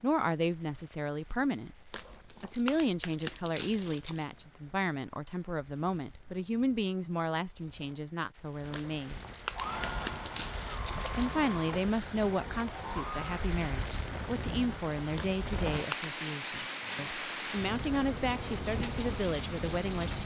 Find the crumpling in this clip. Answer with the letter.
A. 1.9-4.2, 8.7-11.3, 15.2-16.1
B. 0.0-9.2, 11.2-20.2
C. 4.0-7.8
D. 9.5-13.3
A.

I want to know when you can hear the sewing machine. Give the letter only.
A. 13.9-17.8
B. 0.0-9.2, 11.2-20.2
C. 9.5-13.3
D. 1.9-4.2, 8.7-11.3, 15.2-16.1
C.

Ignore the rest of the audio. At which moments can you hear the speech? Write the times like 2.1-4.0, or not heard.
0.0-9.2, 11.2-20.2.